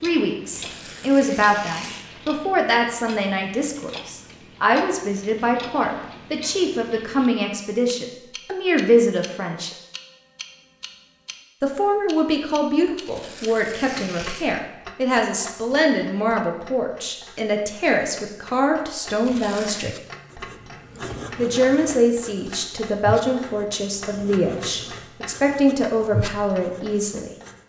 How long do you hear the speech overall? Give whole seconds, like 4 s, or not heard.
24 s.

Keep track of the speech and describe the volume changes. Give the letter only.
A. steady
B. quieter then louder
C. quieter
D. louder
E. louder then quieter
A.